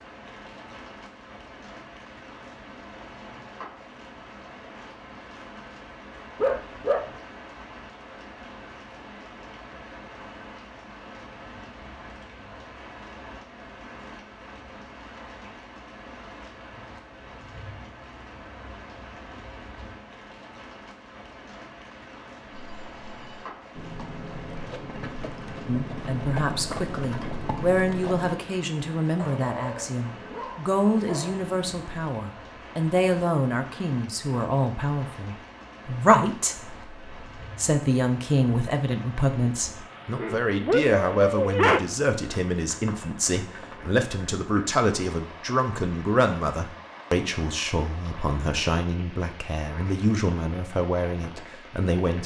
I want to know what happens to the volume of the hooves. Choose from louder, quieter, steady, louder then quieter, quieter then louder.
louder.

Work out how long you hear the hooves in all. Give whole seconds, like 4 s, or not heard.
6 s.